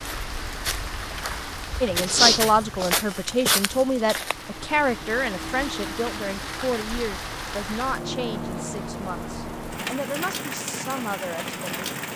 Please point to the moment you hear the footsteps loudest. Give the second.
2 s.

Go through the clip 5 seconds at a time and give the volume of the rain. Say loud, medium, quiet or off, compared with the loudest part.
medium, loud, loud.